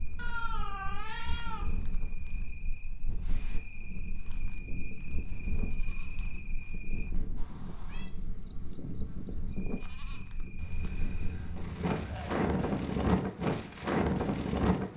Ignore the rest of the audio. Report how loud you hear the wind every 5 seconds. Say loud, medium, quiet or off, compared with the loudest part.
quiet, quiet, loud.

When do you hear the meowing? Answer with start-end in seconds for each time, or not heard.
0.1-2.1, 7.3-8.1, 10.6-12.4.